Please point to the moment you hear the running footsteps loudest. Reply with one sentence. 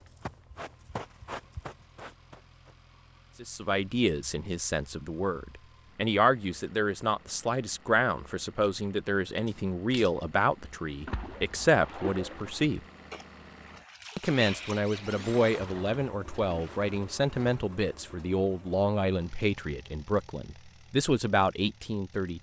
The volume of the running footsteps peaks at 1 second.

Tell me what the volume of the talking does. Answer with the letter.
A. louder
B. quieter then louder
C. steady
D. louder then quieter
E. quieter
C.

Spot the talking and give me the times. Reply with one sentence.
You can hear the talking from 3.4 to 12.8 s and from 14.2 to 22.3 s.